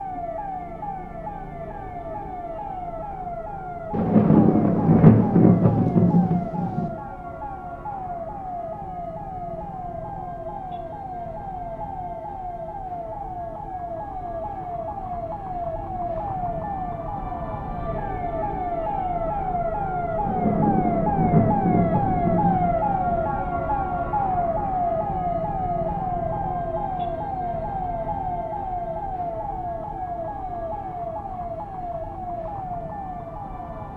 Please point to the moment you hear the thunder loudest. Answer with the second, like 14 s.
5 s.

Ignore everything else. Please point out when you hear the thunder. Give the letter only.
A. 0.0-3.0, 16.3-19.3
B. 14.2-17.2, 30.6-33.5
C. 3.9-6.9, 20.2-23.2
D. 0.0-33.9
C.